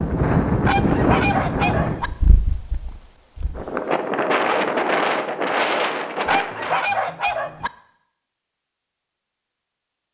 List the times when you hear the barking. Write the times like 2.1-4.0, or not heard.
0.7-2.1, 6.2-7.7.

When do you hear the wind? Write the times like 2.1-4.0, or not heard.
0.0-6.9.